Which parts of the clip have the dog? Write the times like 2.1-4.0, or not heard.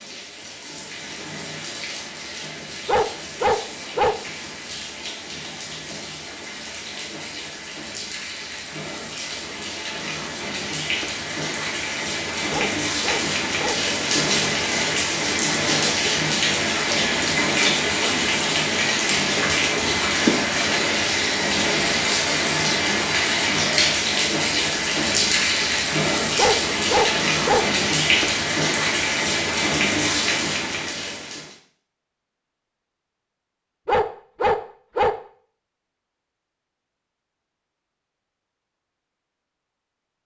2.9-4.2, 12.5-13.8, 26.4-27.7, 33.9-35.2.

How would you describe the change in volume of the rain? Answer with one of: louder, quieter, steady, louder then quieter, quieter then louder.
louder.